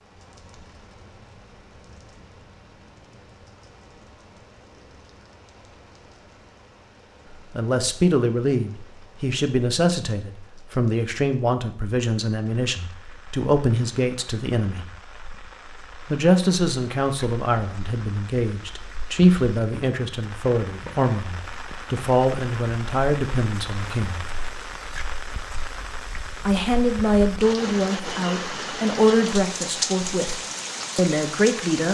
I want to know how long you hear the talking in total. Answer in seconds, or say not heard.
20 s.